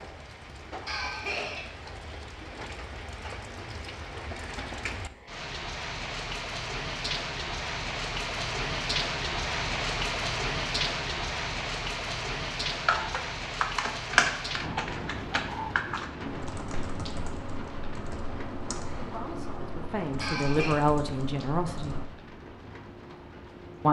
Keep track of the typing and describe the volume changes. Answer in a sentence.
The volume of the typing goes down.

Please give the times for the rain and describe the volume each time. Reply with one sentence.
You can hear the rain from 0.0 to 23.8 s, getting louder then quieter.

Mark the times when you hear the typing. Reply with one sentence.
You can hear the typing from 12.8 to 22.1 s.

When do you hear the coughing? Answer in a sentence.
The coughing can be heard from 0.8 to 1.6 s and from 20.2 to 20.8 s.